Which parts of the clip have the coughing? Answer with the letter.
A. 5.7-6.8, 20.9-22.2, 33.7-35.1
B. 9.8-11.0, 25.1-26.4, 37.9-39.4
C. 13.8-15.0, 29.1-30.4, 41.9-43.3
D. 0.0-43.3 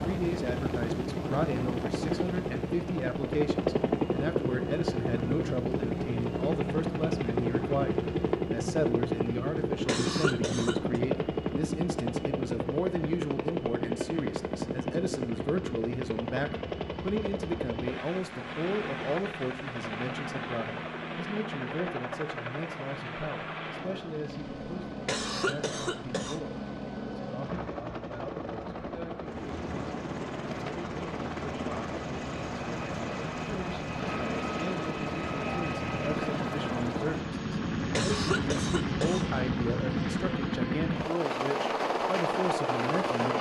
B.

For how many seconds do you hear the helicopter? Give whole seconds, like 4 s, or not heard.
43 s.